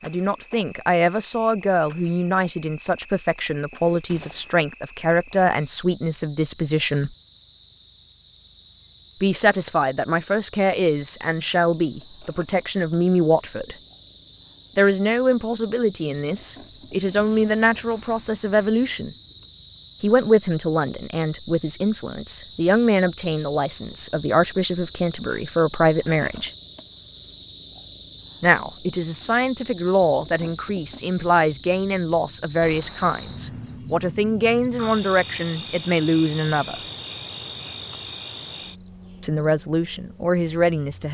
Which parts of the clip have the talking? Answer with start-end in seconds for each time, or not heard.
0.0-7.1, 9.2-13.8, 14.8-19.1, 20.0-26.5, 28.4-36.8, 39.2-41.1.